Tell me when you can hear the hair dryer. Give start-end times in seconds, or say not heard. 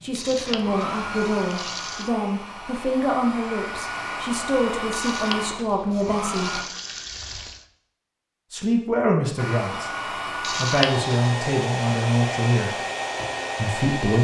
0.0-6.7, 9.3-14.1.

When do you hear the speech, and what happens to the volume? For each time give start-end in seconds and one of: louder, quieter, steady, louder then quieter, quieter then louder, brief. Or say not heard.
0.0-6.6 steady
8.5-12.8 quieter then louder
13.6-14.1 brief.